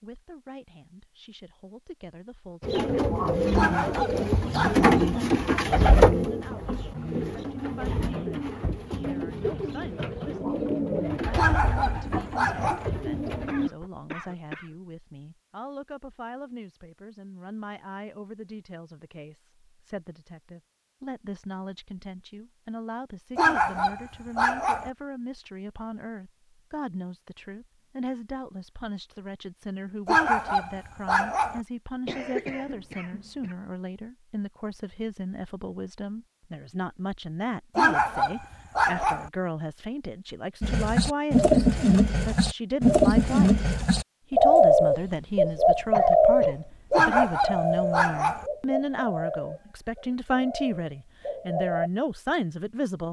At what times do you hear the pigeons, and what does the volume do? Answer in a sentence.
The pigeons can be heard from 2.6 to 13.8 s, getting quieter; and from 40.6 to 51.9 s, getting quieter.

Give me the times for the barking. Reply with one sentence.
You can hear the barking from 3.5 to 5.0 s, from 11.3 to 12.9 s, from 23.4 to 24.9 s, from 30.1 to 31.6 s, from 37.8 to 39.3 s and from 46.9 to 48.5 s.